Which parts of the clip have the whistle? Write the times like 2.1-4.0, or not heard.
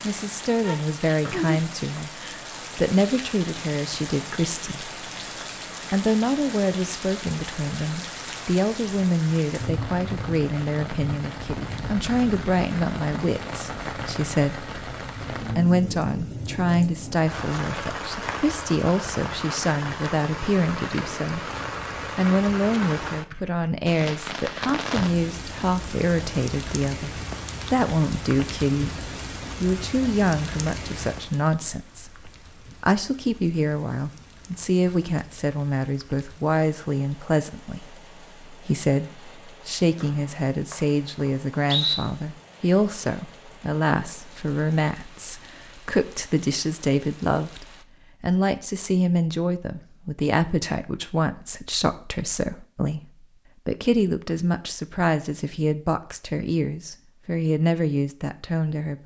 1.2-2.0, 40.0-42.0.